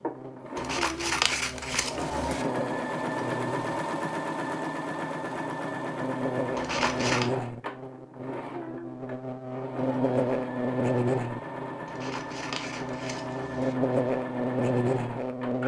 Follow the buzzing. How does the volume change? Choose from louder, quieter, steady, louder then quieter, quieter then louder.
louder.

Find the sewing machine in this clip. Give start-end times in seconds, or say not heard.
0.0-15.6.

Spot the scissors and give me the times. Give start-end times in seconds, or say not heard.
0.6-2.5, 6.5-7.3, 11.8-13.8.